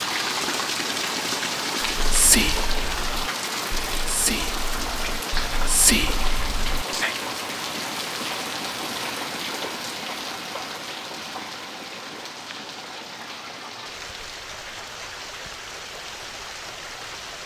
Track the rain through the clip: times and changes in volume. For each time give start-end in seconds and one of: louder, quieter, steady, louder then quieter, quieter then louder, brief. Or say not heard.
0.0-17.4 quieter.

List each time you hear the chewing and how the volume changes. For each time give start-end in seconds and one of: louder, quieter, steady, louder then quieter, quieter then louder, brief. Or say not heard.
not heard.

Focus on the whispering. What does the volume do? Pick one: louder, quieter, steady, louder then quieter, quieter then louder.
quieter then louder.